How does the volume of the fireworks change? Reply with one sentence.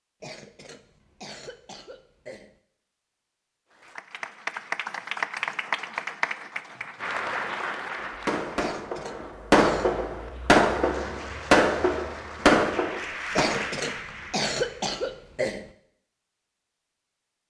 The volume of the fireworks goes up.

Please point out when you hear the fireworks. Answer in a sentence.
The fireworks can be heard from 8.0 to 13.7 s.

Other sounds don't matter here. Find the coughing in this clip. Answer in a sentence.
The coughing can be heard from 0.2 to 2.5 s, from 8.6 to 9.9 s and from 13.3 to 15.7 s.